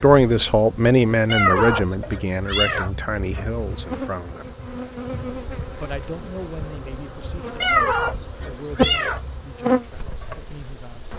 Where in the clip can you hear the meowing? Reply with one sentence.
You can hear the meowing from 1.2 to 3.6 s and from 7.6 to 9.6 s.